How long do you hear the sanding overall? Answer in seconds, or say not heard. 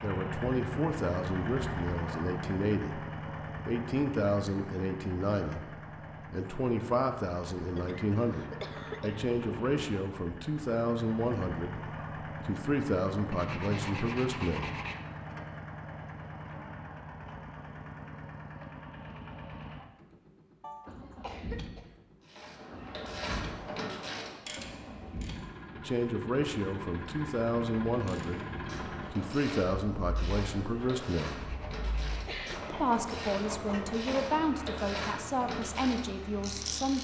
3 s.